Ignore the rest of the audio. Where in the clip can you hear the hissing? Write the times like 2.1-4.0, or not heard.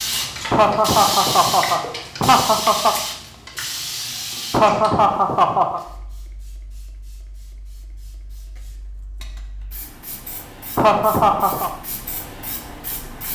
0.0-13.3.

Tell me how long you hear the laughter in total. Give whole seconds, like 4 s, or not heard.
5 s.